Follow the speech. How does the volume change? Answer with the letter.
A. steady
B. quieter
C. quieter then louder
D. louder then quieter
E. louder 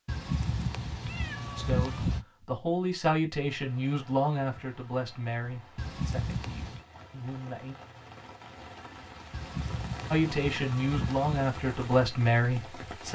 C.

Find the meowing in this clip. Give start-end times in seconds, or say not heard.
0.1-2.2, 5.8-6.8, 9.3-11.5.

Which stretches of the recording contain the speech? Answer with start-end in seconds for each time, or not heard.
1.6-7.8, 10.1-13.1.